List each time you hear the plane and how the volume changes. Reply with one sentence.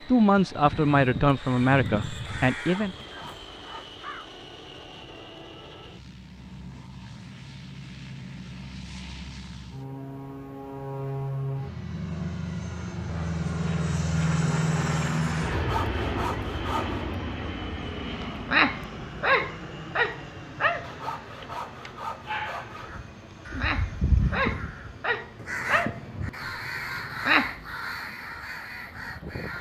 The plane can be heard from 0.0 to 29.5 s, getting louder then quieter.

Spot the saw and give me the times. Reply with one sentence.
The saw can be heard from 2.5 to 4.0 s, from 15.5 to 17.1 s and from 20.8 to 23.0 s.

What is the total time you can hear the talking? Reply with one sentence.
The talking can be heard for 3 seconds in total.